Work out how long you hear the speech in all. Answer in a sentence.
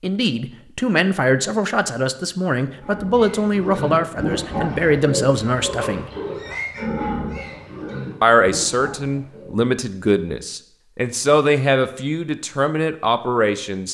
You can hear the speech for 12 seconds altogether.